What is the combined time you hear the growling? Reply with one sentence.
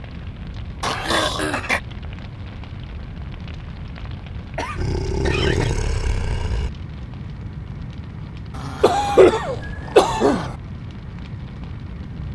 You can hear the growling for 5 seconds altogether.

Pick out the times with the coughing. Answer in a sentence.
You can hear the coughing from 1.0 to 1.6 s, from 4.5 to 5.8 s and from 8.8 to 10.6 s.